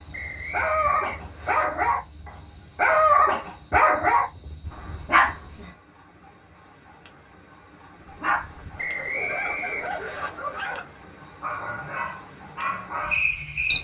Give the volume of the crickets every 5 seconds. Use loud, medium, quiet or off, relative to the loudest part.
medium, medium, loud.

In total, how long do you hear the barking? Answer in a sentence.
The barking can be heard for 11 seconds in total.